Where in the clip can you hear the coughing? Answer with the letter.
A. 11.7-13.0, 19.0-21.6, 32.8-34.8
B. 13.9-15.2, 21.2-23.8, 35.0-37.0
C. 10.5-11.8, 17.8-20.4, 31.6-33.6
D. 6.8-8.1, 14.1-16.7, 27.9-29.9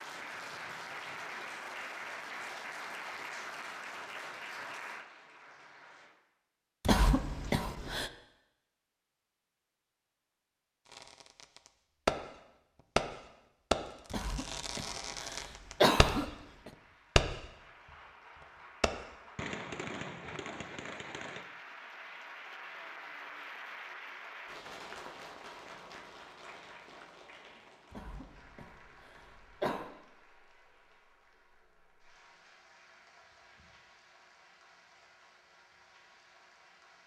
D.